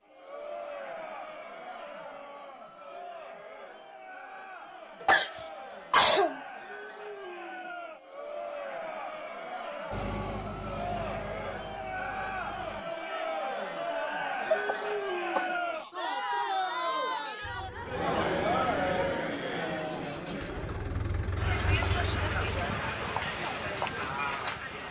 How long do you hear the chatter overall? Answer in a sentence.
You can hear the chatter for 25 seconds altogether.